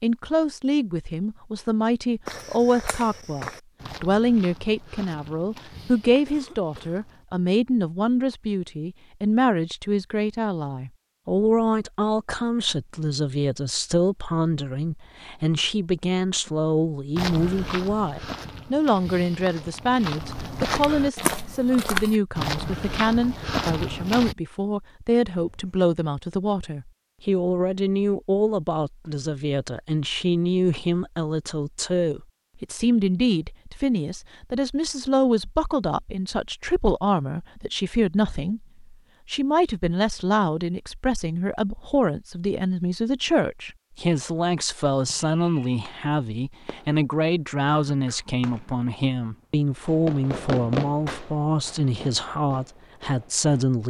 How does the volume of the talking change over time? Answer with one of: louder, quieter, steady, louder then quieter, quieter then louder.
steady.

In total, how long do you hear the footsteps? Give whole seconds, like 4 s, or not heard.
12 s.